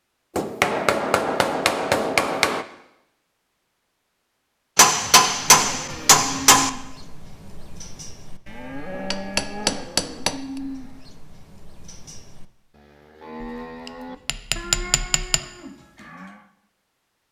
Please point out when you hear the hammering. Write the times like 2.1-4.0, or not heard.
0.3-2.6, 4.8-6.7, 9.1-10.3, 14.2-15.4.